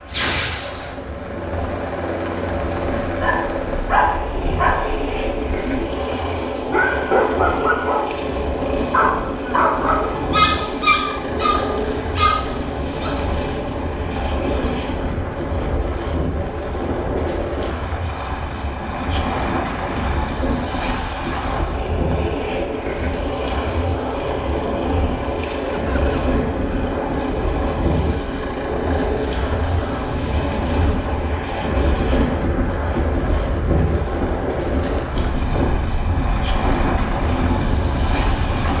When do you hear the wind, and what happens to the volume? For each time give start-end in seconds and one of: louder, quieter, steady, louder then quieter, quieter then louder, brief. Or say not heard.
0.0-38.7 louder.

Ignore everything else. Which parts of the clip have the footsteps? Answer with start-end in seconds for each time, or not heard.
not heard.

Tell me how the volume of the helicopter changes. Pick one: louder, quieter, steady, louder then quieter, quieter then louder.
steady.